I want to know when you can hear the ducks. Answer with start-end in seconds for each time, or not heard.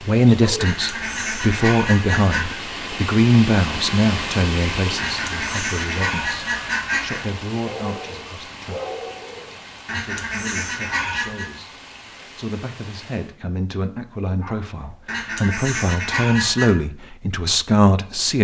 0.6-2.6, 5.0-7.2, 9.8-11.5, 15.1-16.8.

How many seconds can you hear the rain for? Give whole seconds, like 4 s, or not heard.
13 s.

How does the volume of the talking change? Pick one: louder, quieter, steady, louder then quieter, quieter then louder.
quieter then louder.